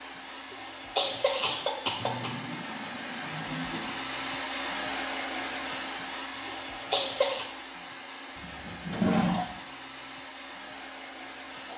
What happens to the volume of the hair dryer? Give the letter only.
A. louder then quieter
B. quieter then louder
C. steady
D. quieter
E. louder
A.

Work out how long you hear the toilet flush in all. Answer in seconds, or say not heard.
3 s.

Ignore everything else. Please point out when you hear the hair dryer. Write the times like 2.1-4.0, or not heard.
0.0-11.7.